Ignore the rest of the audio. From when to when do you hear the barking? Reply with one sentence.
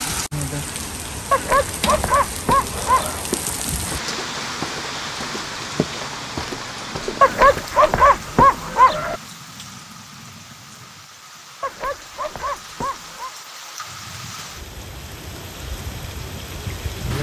You can hear the barking from 1.3 to 3.2 s, from 7.2 to 9.2 s and from 11.6 to 13.3 s.